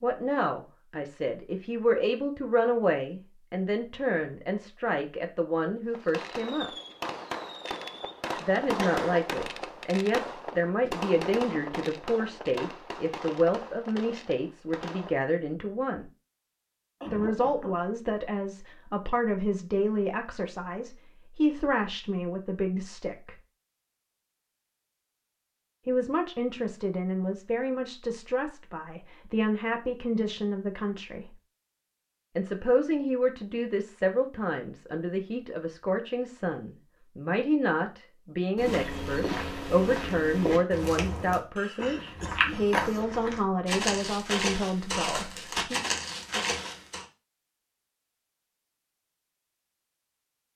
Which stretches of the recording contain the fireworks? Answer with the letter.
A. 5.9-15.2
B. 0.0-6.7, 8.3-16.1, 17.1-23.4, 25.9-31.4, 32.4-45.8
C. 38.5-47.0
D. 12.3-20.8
A.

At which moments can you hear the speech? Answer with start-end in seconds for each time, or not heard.
0.0-6.7, 8.3-16.1, 17.1-23.4, 25.9-31.4, 32.4-45.8.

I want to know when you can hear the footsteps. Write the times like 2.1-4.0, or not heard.
38.5-47.0.